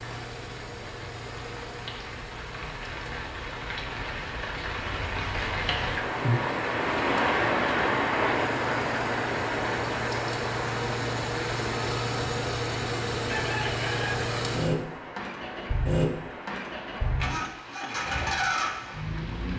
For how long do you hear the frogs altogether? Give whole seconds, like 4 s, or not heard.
not heard.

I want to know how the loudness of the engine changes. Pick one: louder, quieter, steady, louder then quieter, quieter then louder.
louder.